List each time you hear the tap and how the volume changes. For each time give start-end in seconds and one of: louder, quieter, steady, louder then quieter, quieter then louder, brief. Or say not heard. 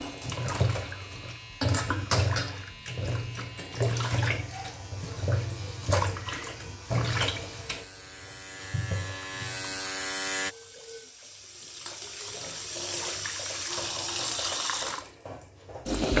0.0-16.1 quieter then louder.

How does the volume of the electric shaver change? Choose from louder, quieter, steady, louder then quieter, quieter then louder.
louder.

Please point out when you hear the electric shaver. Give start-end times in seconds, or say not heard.
0.0-10.6.